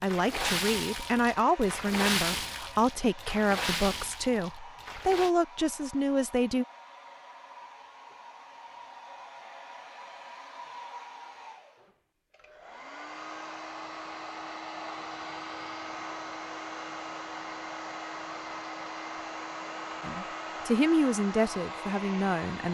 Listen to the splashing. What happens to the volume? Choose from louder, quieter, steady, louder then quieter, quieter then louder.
quieter.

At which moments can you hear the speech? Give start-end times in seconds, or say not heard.
0.0-6.7, 20.0-22.6.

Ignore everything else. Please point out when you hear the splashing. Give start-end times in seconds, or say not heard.
0.0-5.3.